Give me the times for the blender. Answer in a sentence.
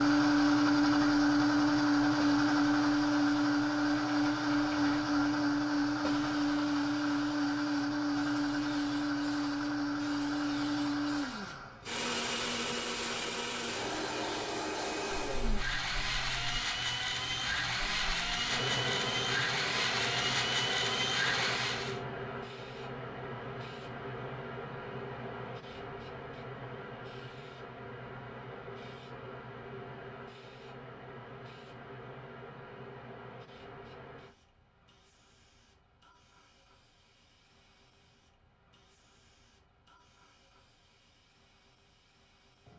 The blender can be heard from 0.0 to 22.0 s.